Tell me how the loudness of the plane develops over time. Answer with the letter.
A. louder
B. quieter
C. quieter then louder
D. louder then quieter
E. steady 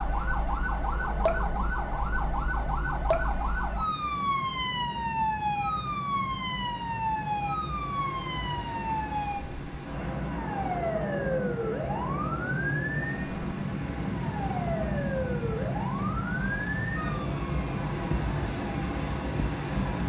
A.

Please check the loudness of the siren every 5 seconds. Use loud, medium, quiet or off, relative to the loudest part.
loud, loud, loud, medium.